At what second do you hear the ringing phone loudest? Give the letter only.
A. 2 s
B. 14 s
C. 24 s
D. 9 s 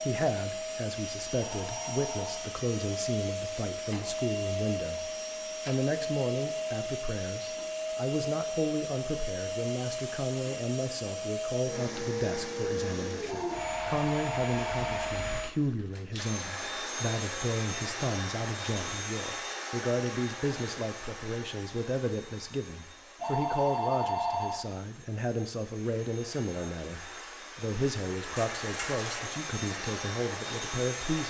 C.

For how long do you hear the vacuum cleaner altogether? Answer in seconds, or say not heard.
31 s.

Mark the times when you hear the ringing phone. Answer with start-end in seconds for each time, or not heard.
1.4-2.4, 13.2-15.2, 23.2-24.6.